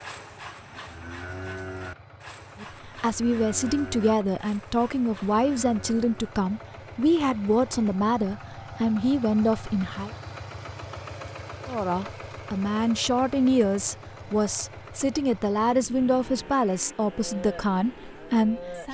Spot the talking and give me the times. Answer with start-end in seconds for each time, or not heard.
2.6-10.1, 11.7-18.9.